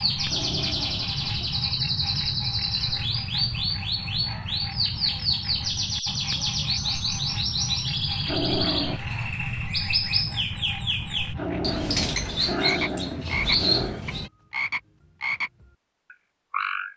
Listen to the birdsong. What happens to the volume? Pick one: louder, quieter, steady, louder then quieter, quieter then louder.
steady.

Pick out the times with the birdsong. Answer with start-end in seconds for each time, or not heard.
0.0-14.3.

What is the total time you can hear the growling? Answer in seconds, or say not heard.
5 s.